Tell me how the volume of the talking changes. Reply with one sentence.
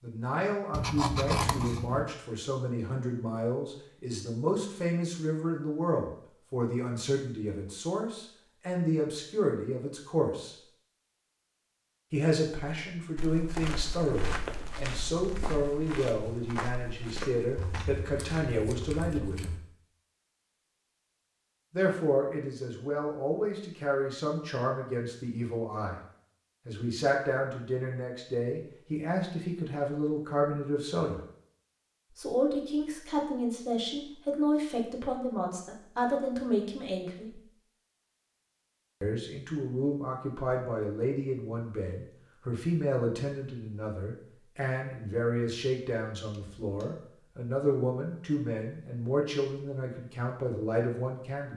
The volume of the talking stays about the same.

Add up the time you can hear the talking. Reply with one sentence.
You can hear the talking for 45 seconds altogether.